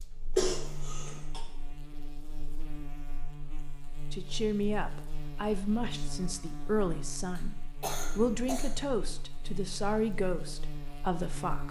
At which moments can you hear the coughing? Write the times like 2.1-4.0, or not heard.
0.3-1.4, 7.3-8.8.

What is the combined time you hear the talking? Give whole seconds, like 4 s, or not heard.
7 s.